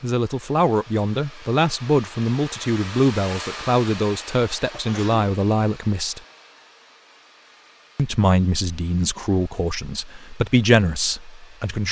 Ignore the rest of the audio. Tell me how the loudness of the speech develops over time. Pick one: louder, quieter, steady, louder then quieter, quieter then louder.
steady.